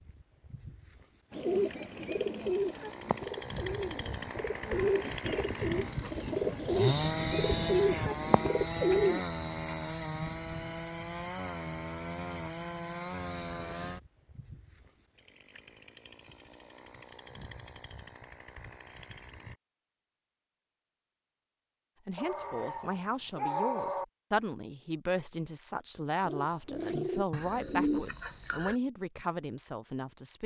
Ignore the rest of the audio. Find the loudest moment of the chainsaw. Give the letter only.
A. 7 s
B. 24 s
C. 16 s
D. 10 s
A.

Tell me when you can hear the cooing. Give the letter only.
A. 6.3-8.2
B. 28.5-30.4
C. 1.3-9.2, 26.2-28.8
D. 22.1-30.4
C.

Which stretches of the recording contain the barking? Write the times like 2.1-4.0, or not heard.
22.1-24.1.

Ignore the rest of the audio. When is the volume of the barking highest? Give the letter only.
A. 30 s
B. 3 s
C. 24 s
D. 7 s
C.